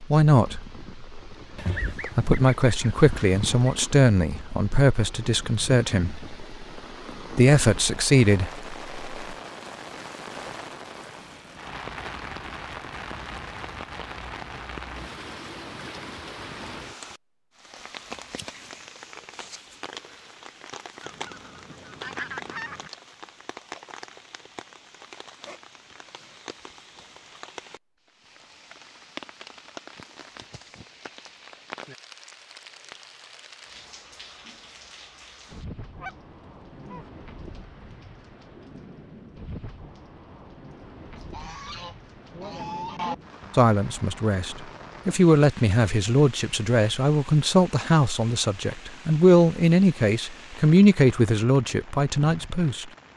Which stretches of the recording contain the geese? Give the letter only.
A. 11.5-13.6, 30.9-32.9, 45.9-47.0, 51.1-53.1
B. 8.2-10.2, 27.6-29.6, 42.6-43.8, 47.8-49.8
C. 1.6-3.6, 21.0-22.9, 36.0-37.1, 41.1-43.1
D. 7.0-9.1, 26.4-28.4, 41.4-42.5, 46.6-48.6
C.